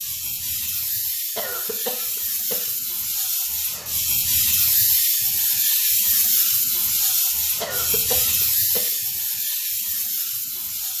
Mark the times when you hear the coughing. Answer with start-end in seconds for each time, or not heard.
1.4-2.6, 7.6-8.9.